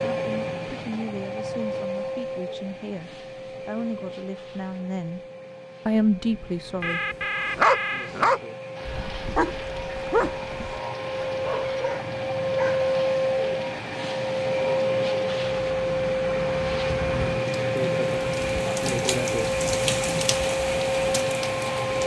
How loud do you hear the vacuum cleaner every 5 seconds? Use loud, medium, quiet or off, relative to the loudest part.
medium, quiet, loud, loud, loud.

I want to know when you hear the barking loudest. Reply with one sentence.
The volume of the barking peaks at 8 seconds.